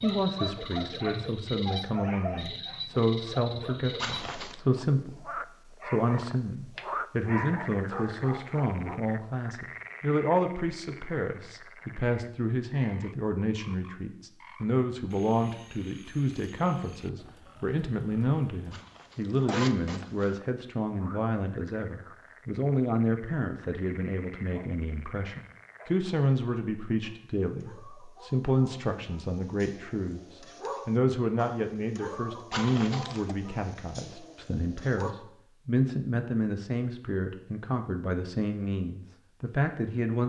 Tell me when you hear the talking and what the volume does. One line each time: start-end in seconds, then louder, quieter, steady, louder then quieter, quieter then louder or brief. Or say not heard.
0.0-40.2 steady.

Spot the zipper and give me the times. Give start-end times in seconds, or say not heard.
4.0-4.6, 18.7-20.4, 32.5-33.4.